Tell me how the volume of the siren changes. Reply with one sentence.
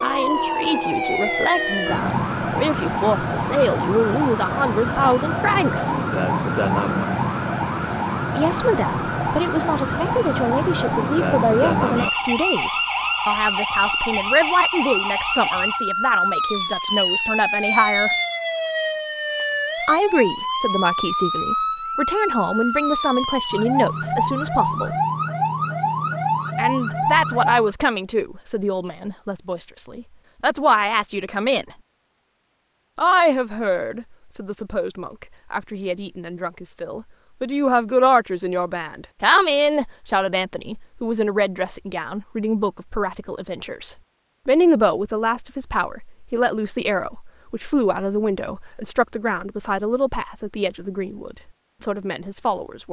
The loudness of the siren stays about the same.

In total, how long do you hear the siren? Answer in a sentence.
The siren can be heard for 28 seconds in total.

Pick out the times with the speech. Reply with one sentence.
You can hear the speech from 0.0 to 6.0 s, from 8.3 to 18.1 s, from 19.9 to 24.9 s, from 26.6 to 31.7 s and from 33.0 to 52.8 s.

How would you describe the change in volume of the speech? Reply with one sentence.
The loudness of the speech stays about the same.